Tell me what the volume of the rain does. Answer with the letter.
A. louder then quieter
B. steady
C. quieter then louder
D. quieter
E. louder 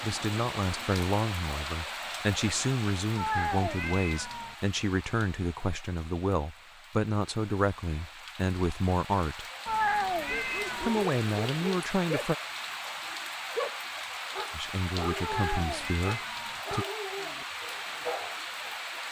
C.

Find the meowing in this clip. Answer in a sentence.
The meowing can be heard from 3.1 to 4.5 s, from 9.7 to 11.1 s and from 15.2 to 16.6 s.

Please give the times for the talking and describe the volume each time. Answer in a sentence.
The talking can be heard from 0.0 to 9.4 s, at a steady volume; briefly from 10.8 to 12.3 s; and briefly from 14.5 to 16.9 s.